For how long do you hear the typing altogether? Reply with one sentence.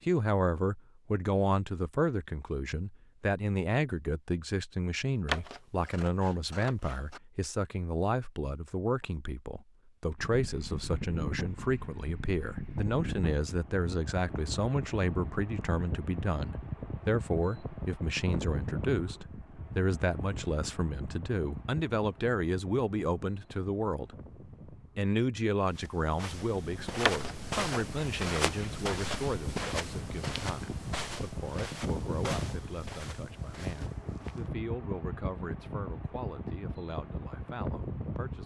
You can't hear the typing here.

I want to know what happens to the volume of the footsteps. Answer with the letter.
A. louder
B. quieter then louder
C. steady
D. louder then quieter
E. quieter
E.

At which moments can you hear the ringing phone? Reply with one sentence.
You can't hear the ringing phone here.